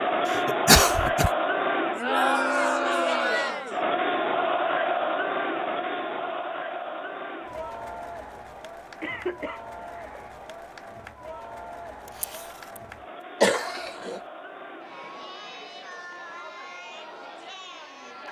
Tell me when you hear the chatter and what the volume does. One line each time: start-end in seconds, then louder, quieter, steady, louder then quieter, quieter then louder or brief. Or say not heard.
0.0-18.2 quieter.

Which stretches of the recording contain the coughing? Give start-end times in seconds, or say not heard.
0.2-1.3, 9.0-10.3, 13.4-14.2.